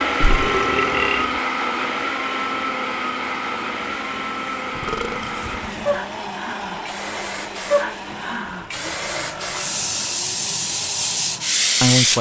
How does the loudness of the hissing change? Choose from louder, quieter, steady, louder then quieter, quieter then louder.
louder.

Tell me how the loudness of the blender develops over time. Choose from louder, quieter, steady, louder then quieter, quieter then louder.
quieter.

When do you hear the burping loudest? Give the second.
1 s.